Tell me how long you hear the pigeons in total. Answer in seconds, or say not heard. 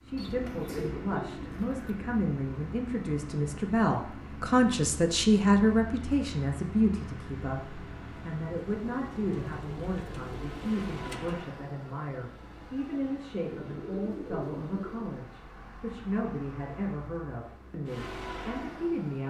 5 s.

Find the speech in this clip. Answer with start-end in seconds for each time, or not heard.
0.0-19.2.